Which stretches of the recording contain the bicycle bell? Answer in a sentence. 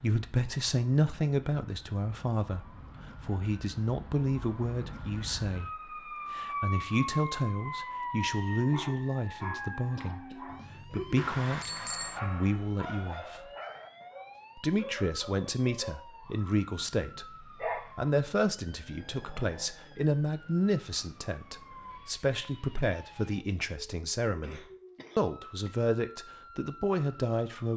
The bicycle bell can be heard from 11.2 to 12.2 s.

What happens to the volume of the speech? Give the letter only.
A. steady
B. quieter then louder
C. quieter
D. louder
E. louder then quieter
A.